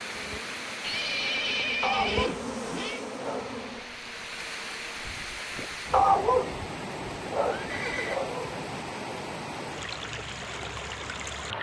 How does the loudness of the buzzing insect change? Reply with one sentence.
The volume of the buzzing insect goes up, then down.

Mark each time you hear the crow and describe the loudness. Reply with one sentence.
The crow can't be heard in this clip.